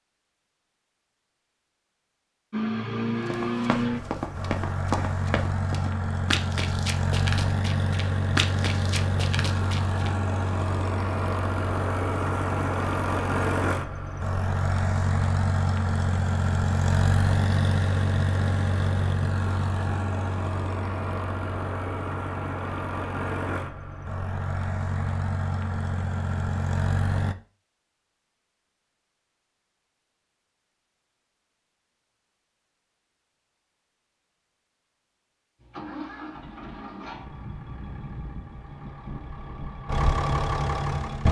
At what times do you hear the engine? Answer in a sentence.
The engine can be heard from 2.5 to 27.4 s and from 35.6 to 41.2 s.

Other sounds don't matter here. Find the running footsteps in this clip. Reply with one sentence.
The running footsteps can be heard from 3.3 to 10.1 s.